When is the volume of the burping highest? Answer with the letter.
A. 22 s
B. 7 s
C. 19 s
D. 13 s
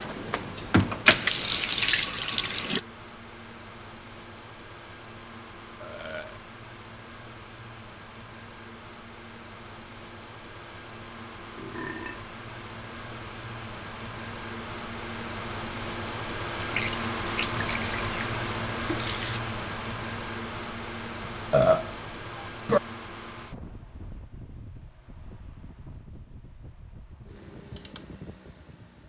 A.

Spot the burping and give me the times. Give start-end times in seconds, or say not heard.
5.8-6.4, 11.6-12.2, 21.3-22.8.